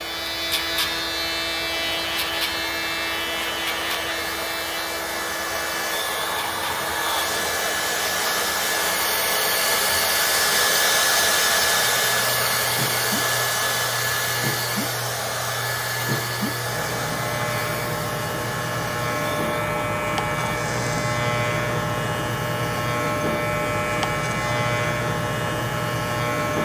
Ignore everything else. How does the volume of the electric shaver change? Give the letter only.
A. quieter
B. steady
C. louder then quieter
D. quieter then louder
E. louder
D.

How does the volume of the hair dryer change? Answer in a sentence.
The volume of the hair dryer goes up, then down.